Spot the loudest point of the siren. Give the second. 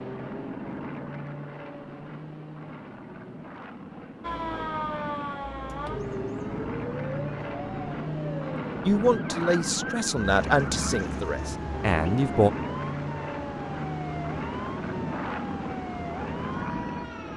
5 s.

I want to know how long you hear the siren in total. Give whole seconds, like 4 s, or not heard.
13 s.